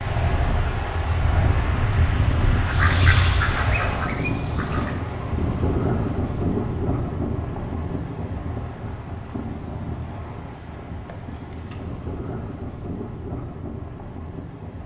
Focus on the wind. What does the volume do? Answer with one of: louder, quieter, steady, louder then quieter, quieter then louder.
quieter.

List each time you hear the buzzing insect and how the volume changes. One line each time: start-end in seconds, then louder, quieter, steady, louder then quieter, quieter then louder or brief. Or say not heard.
not heard.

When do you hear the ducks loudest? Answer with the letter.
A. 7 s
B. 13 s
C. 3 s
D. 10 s
C.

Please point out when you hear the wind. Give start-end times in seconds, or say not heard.
0.0-14.8.